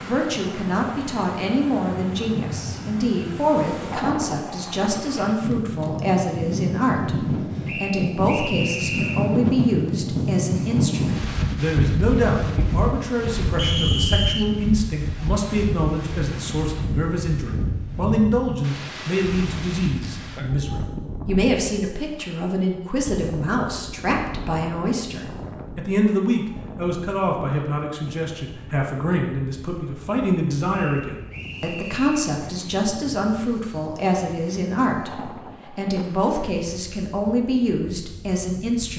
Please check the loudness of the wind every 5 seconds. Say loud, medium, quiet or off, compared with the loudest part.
medium, loud, loud, medium, medium, quiet, quiet, quiet.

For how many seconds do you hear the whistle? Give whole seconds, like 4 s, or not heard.
4 s.